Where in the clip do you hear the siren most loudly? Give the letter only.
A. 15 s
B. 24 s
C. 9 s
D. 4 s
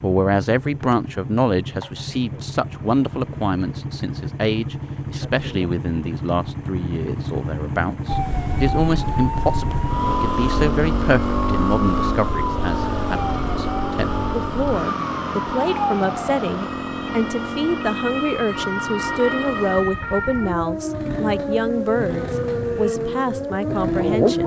B.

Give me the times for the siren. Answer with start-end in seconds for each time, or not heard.
8.1-24.4.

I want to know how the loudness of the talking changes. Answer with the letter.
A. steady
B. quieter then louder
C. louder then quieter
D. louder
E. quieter
A.